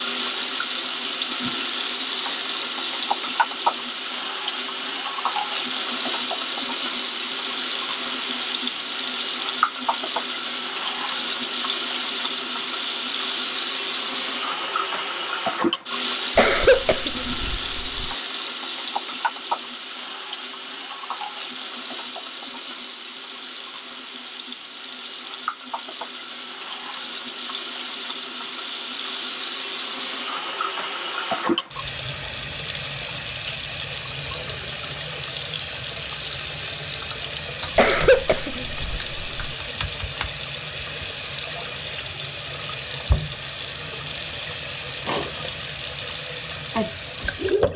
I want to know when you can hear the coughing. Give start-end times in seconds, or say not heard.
16.4-18.1, 37.8-39.5.